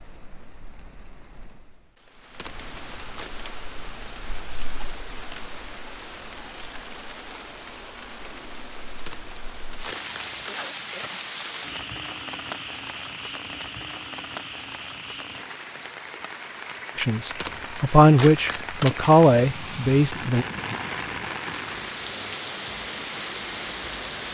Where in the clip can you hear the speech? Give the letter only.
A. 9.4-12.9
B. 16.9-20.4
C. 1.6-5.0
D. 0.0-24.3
B.